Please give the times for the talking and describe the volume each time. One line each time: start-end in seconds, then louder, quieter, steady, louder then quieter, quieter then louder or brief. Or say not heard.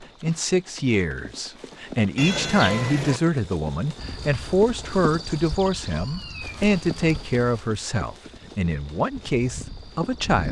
0.0-10.4 steady.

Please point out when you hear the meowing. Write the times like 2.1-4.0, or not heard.
2.1-3.2, 5.8-7.2.